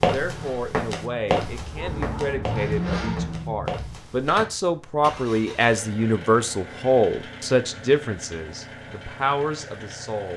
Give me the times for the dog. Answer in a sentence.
The dog can be heard from 1.4 to 3.4 s.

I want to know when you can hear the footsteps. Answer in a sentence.
The footsteps can be heard from 0.0 to 4.5 s.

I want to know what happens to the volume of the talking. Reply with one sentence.
The volume of the talking goes up, then down.